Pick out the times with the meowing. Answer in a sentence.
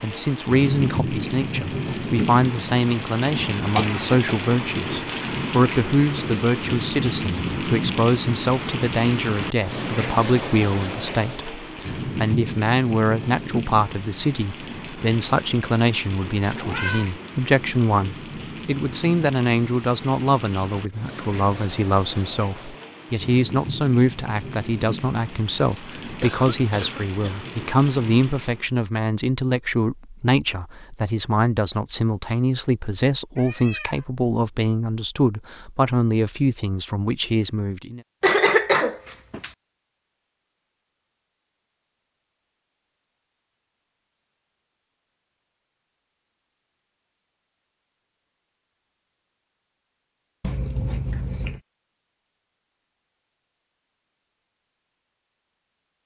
The meowing can be heard from 16.4 to 17.1 s, from 33.4 to 34.0 s and from 50.4 to 51.6 s.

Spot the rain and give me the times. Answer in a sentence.
You can hear the rain from 0.0 to 28.8 s.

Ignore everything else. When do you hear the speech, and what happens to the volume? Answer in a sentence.
You can hear the speech from 0.0 to 38.0 s, at a steady volume.